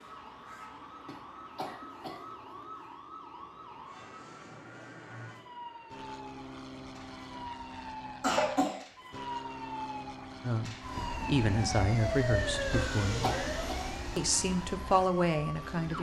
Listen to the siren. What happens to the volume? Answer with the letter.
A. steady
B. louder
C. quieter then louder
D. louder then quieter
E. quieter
B.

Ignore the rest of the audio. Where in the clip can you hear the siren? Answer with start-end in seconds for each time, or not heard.
0.0-15.9.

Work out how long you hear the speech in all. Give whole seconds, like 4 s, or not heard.
5 s.